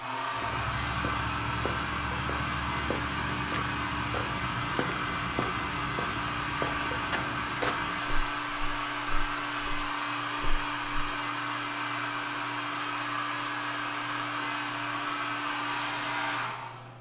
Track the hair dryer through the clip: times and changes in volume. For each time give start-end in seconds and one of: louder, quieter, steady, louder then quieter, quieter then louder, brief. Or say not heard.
0.0-16.9 steady.